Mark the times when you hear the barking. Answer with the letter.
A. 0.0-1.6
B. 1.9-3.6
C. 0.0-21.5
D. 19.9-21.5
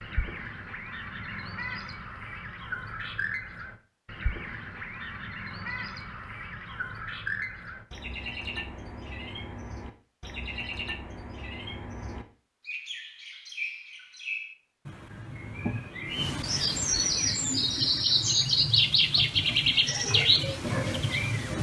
D.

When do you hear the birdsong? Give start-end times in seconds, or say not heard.
0.0-21.5.